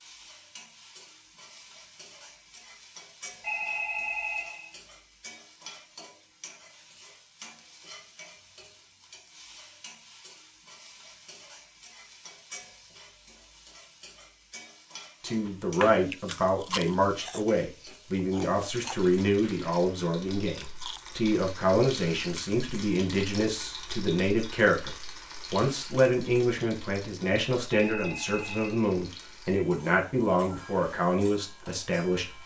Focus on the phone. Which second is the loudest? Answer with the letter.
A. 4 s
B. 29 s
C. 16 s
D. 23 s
A.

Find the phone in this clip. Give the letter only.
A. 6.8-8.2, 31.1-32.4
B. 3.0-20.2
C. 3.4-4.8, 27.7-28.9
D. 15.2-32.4
C.